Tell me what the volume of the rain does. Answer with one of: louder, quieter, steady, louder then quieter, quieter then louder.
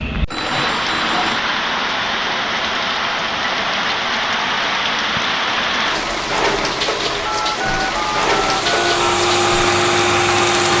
steady.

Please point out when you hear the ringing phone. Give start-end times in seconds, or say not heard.
0.2-1.4, 7.2-9.0.